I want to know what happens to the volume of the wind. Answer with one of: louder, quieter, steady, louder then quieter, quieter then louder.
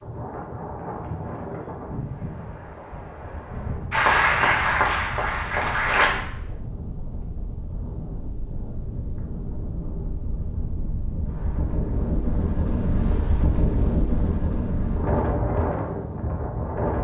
louder.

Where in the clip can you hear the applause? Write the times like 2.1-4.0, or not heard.
3.9-6.1.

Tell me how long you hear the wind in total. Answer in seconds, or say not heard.
17 s.